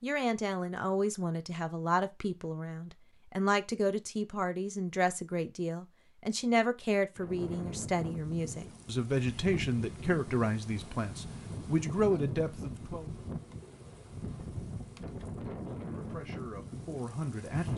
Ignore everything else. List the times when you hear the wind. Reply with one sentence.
You can hear the wind from 7.2 to 17.7 s.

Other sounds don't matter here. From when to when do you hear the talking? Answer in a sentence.
The talking can be heard from 0.0 to 13.1 s and from 15.7 to 17.7 s.